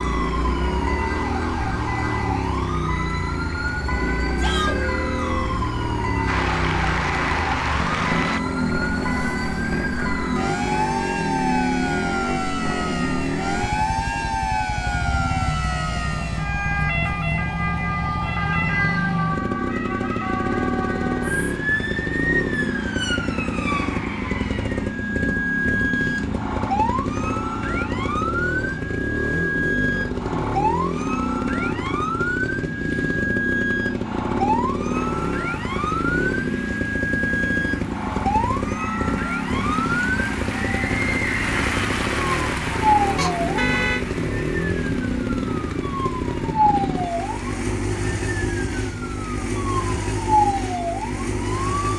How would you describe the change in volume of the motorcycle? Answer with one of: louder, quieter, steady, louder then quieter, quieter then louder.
steady.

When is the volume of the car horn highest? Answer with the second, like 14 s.
44 s.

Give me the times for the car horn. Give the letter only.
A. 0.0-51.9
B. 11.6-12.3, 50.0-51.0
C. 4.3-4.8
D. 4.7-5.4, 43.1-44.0
D.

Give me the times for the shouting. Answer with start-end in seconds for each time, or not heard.
4.3-4.8.